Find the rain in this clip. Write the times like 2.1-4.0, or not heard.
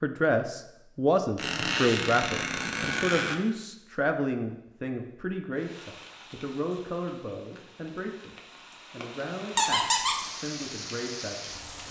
5.5-11.8.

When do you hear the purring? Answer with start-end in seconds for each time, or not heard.
not heard.